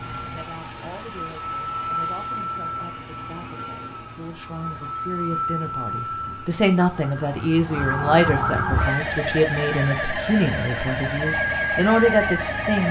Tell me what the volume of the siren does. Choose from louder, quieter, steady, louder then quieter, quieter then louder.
quieter then louder.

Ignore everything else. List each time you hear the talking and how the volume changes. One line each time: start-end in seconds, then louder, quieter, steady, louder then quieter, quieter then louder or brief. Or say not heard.
0.2-12.8 louder.